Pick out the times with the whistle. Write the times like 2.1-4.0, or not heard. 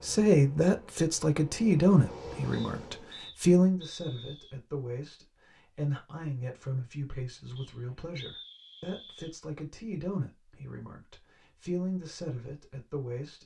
2.5-4.5, 7.5-9.3.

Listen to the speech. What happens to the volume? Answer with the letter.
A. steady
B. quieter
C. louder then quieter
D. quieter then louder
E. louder
B.